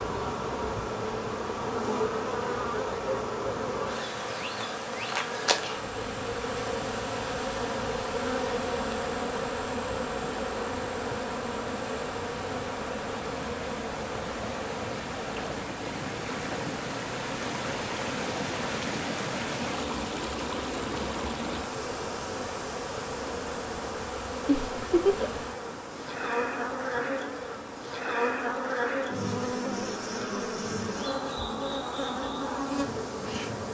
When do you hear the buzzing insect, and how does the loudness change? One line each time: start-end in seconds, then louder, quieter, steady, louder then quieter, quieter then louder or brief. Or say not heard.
0.0-33.6 quieter then louder.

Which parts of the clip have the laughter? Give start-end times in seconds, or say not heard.
24.4-25.4.